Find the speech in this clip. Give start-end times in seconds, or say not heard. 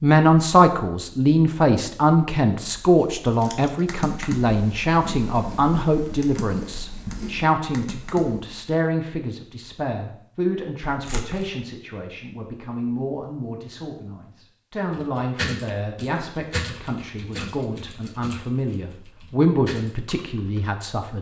0.0-21.1.